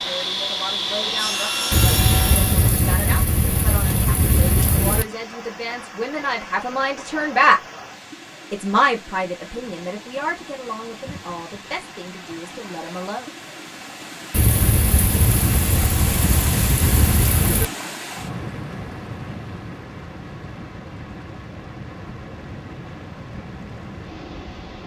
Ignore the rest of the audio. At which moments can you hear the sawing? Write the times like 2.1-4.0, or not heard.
0.0-2.8.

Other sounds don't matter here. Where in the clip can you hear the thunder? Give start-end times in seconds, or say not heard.
1.7-5.0, 14.3-17.6.